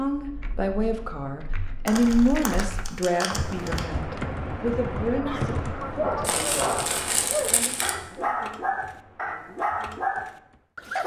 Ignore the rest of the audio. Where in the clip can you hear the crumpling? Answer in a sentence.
The crumpling can be heard from 1.9 to 3.9 s and from 6.2 to 8.0 s.